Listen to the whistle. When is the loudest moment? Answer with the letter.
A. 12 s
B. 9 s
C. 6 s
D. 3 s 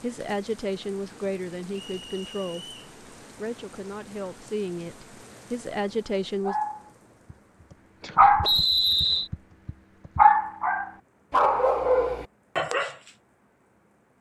B.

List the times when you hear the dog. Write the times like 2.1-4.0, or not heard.
6.5-7.3, 8.0-12.9.